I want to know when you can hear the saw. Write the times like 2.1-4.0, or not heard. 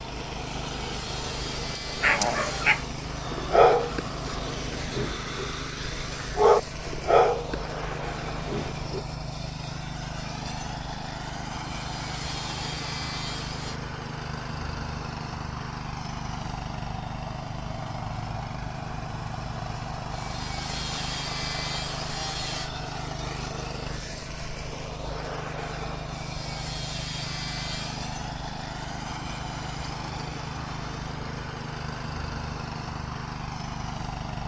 0.6-2.8, 11.8-13.8, 20.1-22.7, 26.1-28.1.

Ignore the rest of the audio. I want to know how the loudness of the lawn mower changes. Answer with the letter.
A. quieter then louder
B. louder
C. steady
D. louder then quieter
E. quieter
C.